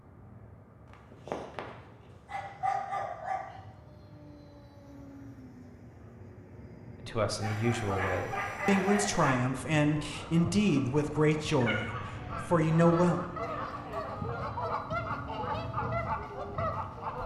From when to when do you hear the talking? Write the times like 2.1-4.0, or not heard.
7.0-13.2.